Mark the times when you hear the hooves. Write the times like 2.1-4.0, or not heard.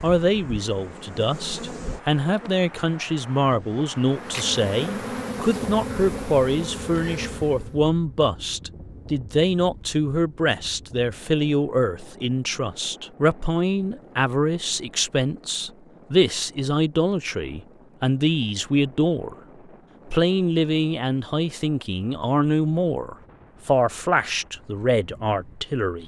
not heard.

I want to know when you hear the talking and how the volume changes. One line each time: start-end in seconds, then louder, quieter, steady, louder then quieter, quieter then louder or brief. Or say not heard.
0.0-19.4 steady
20.1-26.0 steady.